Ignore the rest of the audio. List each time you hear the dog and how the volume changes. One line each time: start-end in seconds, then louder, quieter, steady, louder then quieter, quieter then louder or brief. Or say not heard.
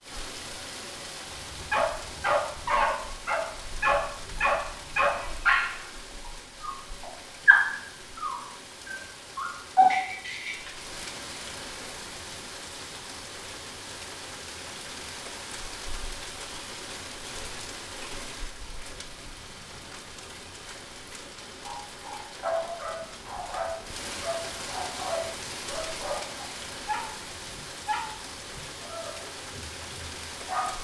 1.4-10.7 steady
21.6-30.7 quieter.